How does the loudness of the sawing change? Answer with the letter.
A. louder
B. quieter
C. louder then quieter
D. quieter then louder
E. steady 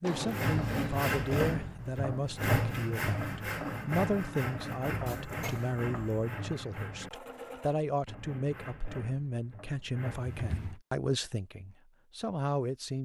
B.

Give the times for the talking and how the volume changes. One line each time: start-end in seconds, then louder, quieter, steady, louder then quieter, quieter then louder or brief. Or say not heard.
0.0-12.9 steady.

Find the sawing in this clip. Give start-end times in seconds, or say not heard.
0.1-10.6.